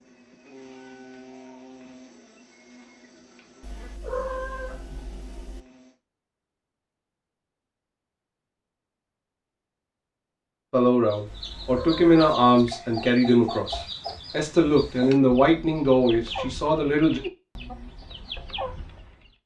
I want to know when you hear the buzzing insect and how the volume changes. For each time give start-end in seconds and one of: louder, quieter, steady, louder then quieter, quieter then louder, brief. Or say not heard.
0.0-6.0 quieter.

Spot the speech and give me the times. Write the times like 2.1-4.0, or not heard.
10.7-17.2.